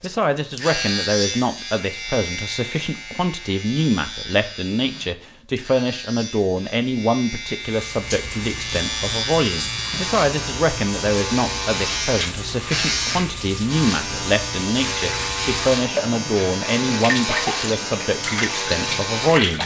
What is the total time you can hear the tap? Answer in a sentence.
The tap can be heard for 12 seconds in total.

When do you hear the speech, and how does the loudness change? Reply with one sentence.
The speech can be heard from 0.0 to 19.6 s, at a steady volume.